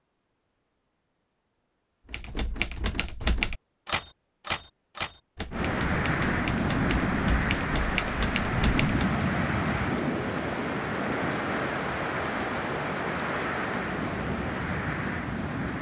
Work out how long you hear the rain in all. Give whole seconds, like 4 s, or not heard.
10 s.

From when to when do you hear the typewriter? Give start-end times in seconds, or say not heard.
2.1-9.1.